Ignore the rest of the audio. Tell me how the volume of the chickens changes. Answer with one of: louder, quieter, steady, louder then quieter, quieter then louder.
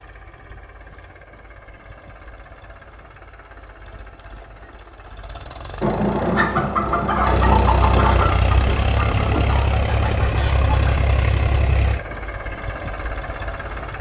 quieter.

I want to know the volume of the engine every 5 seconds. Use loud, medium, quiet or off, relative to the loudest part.
quiet, loud, loud.